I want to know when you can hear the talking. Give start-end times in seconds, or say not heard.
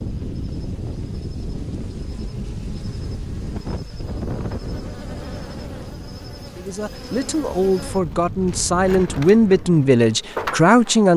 6.5-11.1.